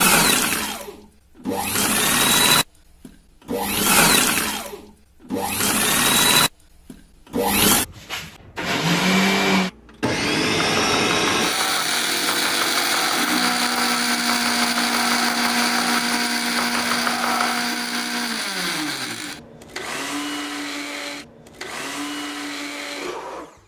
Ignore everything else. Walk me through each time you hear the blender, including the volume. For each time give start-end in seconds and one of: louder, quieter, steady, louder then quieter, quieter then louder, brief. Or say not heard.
0.0-23.6 quieter.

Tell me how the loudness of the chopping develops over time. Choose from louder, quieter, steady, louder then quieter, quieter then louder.
steady.